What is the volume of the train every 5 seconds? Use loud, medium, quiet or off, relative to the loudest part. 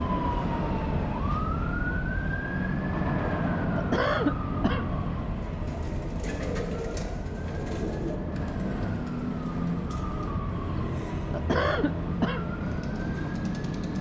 loud, medium, medium.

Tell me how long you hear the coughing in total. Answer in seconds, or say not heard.
2 s.